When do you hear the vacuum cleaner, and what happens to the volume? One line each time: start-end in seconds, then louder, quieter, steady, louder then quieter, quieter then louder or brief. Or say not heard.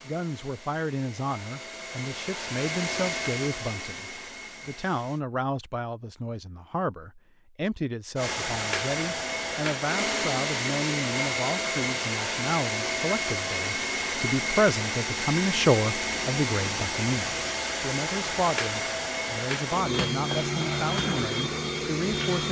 0.0-5.2 louder then quieter
8.2-22.4 steady.